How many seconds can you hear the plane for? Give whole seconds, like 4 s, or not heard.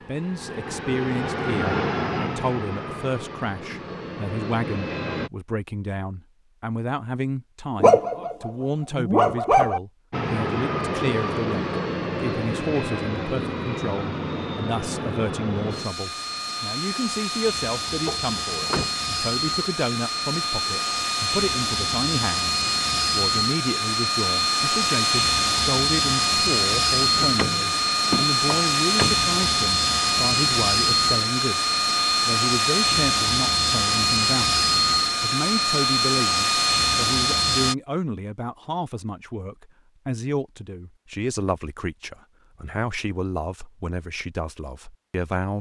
33 s.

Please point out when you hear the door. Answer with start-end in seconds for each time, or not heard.
18.1-18.9, 27.1-29.3.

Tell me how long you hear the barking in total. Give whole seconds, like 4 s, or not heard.
2 s.